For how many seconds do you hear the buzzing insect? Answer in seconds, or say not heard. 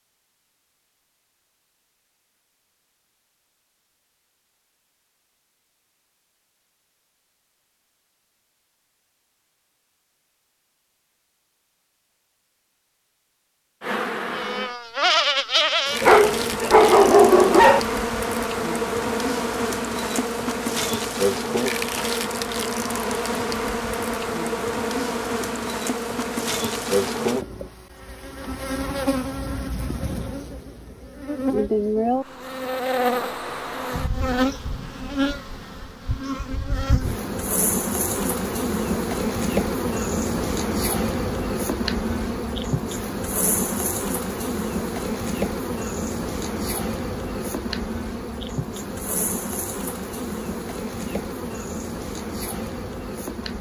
40 s.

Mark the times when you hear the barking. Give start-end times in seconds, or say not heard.
16.0-17.8.